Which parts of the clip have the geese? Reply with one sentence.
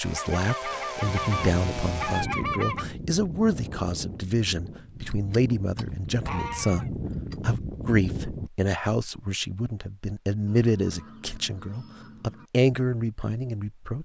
You can hear the geese from 0.1 to 2.9 s, from 5.0 to 7.3 s and from 10.4 to 12.5 s.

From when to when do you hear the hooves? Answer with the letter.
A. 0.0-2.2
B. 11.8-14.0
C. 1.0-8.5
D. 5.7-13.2
C.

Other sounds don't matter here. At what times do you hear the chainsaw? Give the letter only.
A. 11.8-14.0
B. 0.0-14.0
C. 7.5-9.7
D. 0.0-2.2
D.